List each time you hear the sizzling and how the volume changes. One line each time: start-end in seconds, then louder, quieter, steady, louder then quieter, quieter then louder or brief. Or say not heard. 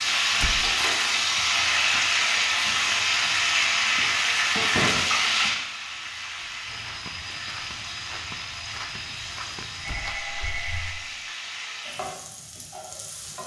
0.0-13.4 quieter.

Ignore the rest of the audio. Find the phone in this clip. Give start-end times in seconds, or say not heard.
9.8-11.0.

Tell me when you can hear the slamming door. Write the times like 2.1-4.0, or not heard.
0.4-0.8, 4.7-5.2, 9.8-10.2.